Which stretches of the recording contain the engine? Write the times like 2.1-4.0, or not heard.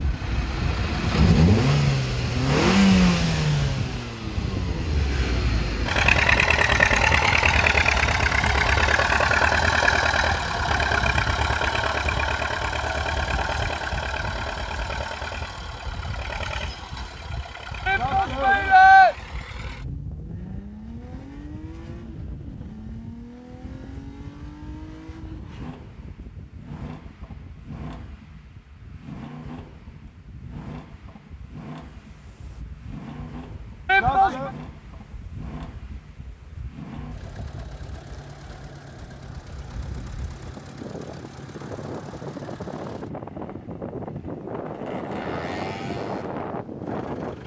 0.0-47.4.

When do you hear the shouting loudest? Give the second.
19 s.